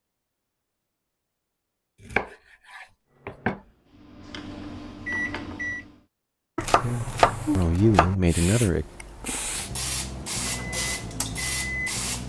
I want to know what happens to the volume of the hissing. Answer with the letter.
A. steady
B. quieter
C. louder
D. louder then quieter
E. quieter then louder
C.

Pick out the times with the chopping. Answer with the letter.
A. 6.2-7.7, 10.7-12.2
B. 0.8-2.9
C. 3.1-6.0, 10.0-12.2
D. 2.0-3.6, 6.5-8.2
D.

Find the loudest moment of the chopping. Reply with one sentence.
The loudest moment of the chopping is at 7 seconds.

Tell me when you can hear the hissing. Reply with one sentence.
The hissing can be heard from 6.7 to 12.2 s.